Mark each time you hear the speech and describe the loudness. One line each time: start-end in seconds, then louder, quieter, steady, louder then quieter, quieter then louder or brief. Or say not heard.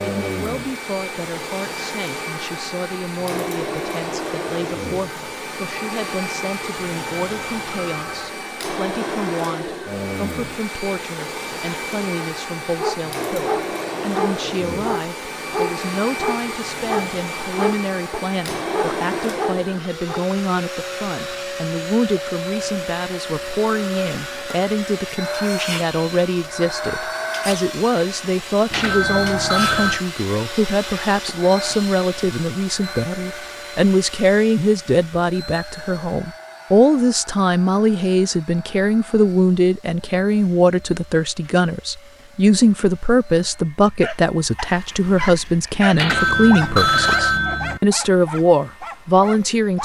0.1-49.8 louder.